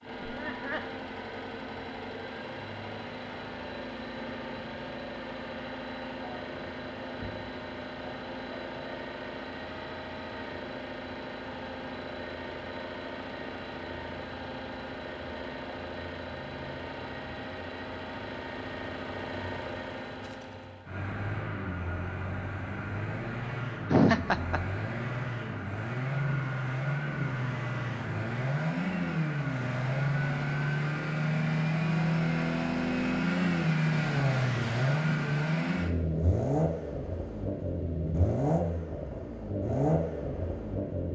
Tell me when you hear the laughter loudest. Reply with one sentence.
The loudest moment of the laughter is at 24 seconds.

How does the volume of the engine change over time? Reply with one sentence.
The volume of the engine goes up.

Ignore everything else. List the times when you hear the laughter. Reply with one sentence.
The laughter can be heard from 0.2 to 0.9 s and from 23.9 to 24.6 s.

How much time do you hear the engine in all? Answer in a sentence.
You can hear the engine for 41 seconds altogether.